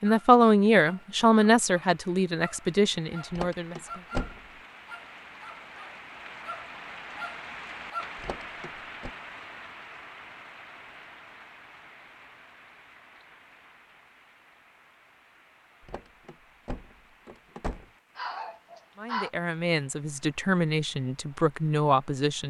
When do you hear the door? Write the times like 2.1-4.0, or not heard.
3.3-4.4, 8.2-9.1, 15.8-17.9.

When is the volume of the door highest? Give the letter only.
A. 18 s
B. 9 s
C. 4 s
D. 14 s
C.